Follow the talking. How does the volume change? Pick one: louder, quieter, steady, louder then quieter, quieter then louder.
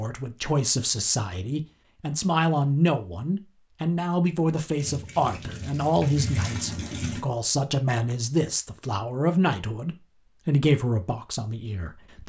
steady.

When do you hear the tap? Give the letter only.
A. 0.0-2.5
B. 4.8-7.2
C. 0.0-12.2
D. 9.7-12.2
B.